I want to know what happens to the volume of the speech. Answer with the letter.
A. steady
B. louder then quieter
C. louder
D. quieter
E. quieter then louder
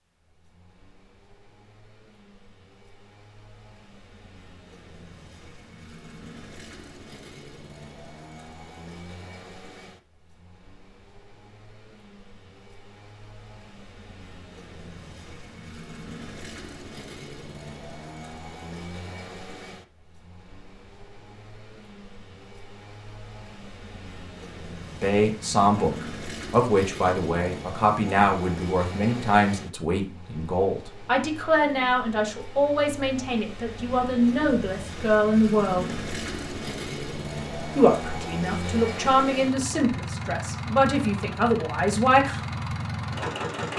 A.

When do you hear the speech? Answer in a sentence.
You can hear the speech from 25.0 to 36.0 s and from 37.8 to 42.4 s.